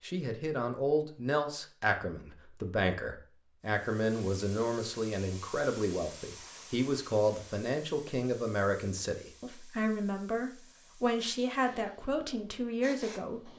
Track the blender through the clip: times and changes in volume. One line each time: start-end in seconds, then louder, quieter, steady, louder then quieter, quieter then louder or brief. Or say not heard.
not heard.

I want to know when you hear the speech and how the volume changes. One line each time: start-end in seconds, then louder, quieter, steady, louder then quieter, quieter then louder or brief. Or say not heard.
0.0-13.5 steady.